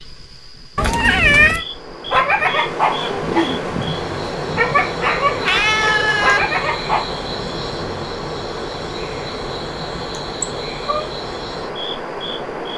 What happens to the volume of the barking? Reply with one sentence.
The loudness of the barking stays about the same.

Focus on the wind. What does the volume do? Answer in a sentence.
The volume of the wind stays about the same.